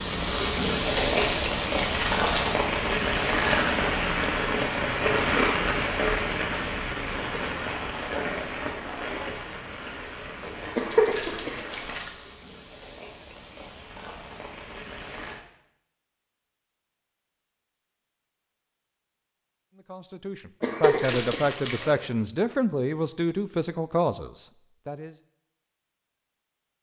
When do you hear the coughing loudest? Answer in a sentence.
The loudest moment of the coughing is at 11 seconds.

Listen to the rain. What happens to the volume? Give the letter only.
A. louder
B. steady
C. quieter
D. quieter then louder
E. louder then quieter
C.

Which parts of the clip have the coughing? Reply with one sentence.
The coughing can be heard from 10.8 to 11.7 s and from 20.6 to 22.1 s.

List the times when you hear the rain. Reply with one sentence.
You can hear the rain from 0.0 to 15.4 s.